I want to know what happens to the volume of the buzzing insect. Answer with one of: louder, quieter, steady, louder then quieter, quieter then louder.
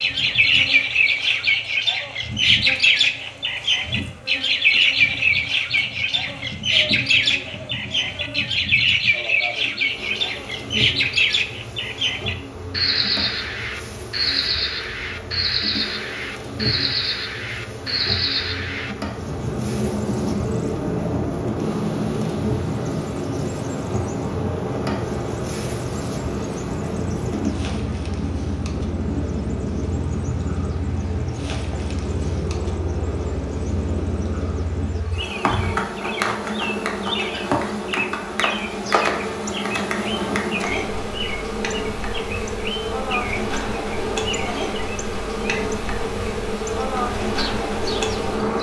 louder.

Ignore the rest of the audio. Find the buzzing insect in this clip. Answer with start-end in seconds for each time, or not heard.
0.0-48.5.